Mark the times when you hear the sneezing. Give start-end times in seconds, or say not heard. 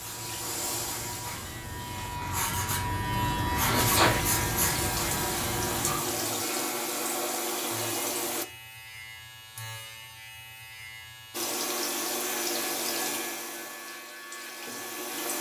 3.6-4.2.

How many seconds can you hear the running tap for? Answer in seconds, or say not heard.
11 s.